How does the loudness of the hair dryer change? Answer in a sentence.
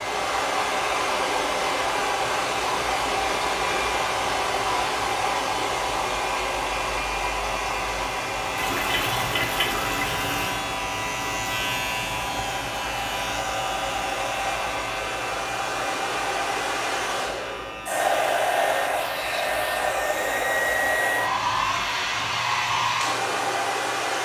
The volume of the hair dryer goes down, then up.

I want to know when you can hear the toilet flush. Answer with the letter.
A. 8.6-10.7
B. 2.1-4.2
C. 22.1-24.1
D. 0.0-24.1
A.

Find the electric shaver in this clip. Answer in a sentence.
The electric shaver can be heard from 0.0 to 24.1 s.